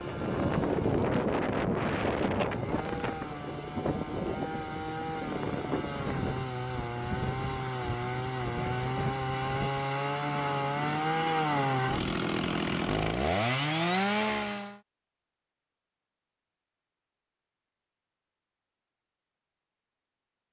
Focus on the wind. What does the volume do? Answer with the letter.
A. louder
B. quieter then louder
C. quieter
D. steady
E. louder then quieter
C.